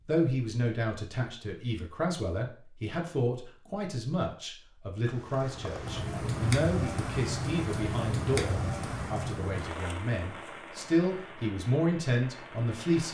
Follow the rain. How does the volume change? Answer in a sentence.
The loudness of the rain goes down.